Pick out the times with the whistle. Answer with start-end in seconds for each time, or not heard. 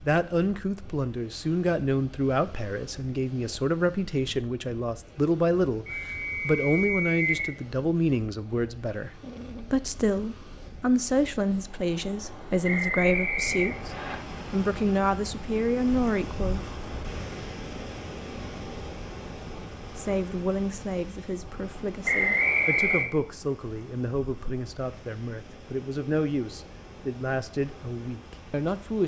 5.8-7.5, 12.6-14.2, 22.1-23.1.